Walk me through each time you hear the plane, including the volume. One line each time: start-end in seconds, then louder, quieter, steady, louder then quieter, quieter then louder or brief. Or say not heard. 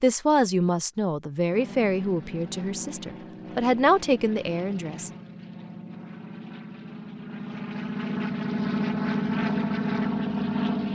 1.5-10.8 louder.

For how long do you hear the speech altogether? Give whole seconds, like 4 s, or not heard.
5 s.